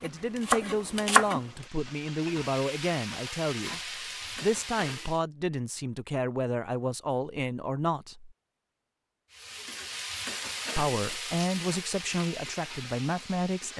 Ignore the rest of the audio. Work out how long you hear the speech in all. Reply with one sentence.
The speech can be heard for 11 seconds in total.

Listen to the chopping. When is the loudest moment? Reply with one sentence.
The volume of the chopping peaks at 1 second.